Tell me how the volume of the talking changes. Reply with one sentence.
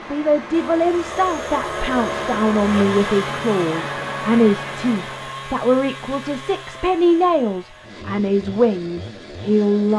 The volume of the talking stays about the same.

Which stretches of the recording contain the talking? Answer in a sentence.
You can hear the talking from 0.1 to 9.9 s.